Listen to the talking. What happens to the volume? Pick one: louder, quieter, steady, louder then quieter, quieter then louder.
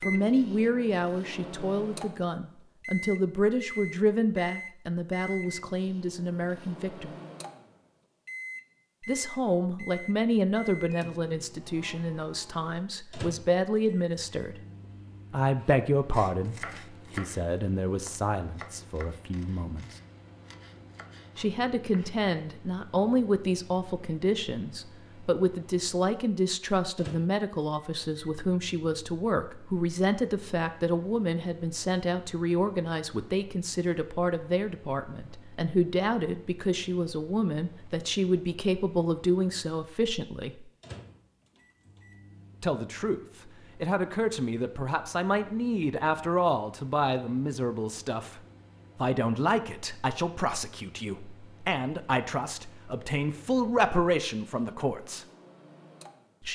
steady.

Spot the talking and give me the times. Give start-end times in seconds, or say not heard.
0.0-7.1, 9.1-14.6, 15.3-20.0, 21.4-40.6, 42.6-55.2.